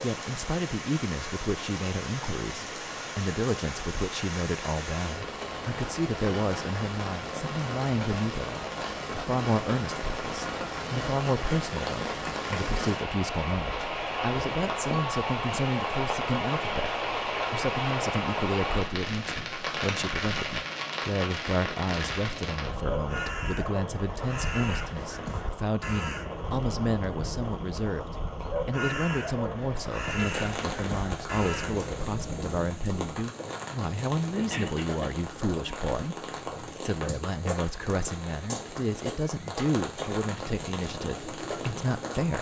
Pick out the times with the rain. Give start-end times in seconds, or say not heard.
0.0-42.3.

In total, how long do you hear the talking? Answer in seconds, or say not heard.
42 s.